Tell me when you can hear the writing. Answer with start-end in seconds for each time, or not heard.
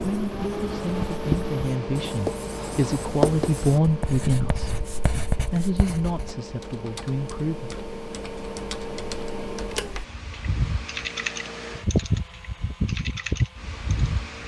0.0-6.3.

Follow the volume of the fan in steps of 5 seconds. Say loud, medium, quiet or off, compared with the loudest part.
loud, medium, loud.